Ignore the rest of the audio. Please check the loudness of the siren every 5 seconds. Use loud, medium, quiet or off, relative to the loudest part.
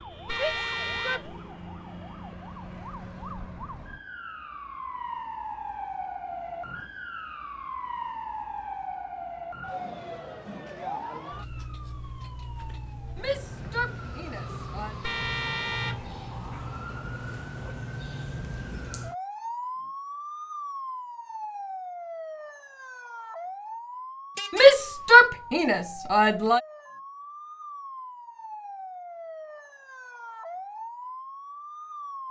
medium, loud, loud, loud, loud, medium, loud.